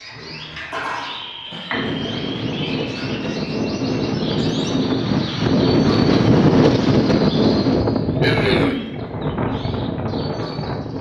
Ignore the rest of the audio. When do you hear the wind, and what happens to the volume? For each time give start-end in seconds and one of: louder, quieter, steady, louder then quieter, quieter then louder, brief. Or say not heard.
1.7-10.9 louder then quieter.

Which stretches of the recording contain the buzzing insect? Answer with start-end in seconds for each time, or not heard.
not heard.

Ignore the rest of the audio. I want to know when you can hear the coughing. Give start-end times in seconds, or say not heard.
1.5-2.1, 8.2-8.9.